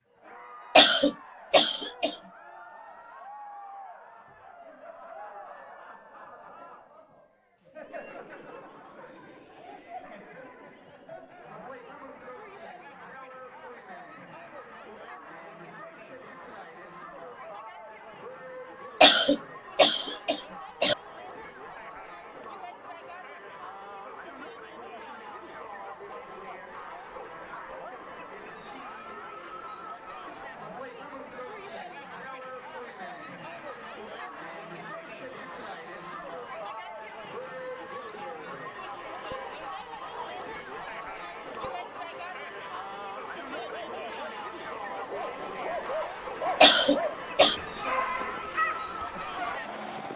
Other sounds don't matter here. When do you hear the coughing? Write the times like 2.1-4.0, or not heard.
0.8-2.1, 19.0-20.9, 46.6-47.5.